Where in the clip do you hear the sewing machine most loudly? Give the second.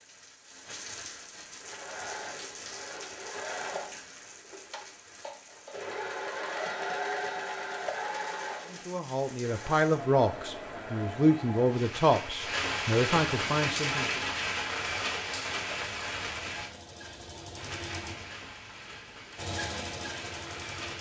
7 s.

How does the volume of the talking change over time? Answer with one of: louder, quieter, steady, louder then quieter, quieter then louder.
steady.